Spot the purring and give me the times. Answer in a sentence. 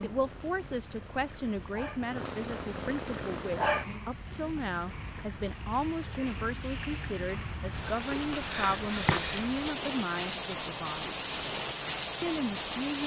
You can hear the purring from 0.0 to 9.2 s.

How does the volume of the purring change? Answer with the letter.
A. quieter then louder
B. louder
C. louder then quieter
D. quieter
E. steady
C.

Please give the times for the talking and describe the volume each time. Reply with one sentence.
The talking can be heard from 0.0 to 11.2 s, at a steady volume; and briefly from 12.2 to 13.0 s.